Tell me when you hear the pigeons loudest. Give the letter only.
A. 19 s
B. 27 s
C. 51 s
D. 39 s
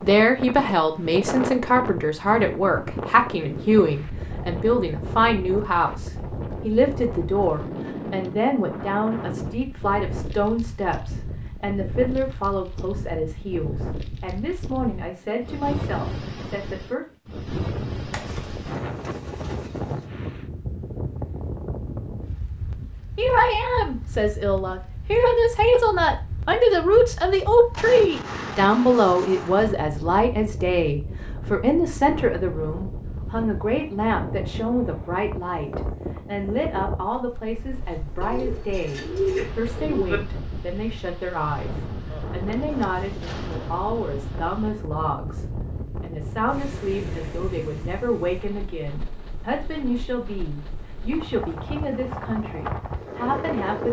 D.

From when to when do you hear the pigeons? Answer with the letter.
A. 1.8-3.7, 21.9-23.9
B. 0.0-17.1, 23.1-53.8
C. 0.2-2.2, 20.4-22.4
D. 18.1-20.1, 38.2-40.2
D.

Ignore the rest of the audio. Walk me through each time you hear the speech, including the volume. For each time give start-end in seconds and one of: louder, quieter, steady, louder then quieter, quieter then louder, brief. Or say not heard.
0.0-17.1 quieter
23.1-53.8 quieter.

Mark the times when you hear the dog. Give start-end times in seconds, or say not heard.
not heard.